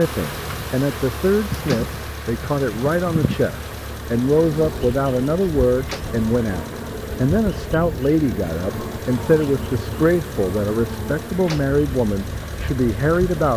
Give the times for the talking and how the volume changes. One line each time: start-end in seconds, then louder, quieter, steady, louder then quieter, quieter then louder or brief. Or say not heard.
0.0-13.5 steady.